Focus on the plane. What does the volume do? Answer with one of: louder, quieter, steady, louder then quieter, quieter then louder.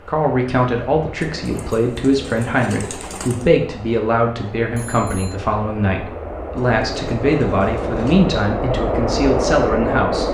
louder.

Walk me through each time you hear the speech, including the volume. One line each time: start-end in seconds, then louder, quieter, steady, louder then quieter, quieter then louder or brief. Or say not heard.
0.1-10.2 steady.